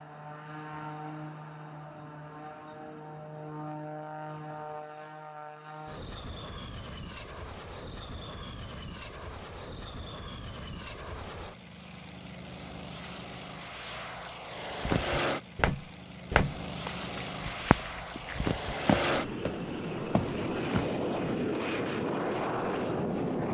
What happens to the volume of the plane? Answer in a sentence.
The volume of the plane goes up.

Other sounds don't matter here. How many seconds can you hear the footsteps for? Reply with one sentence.
You can hear the footsteps for 6 seconds altogether.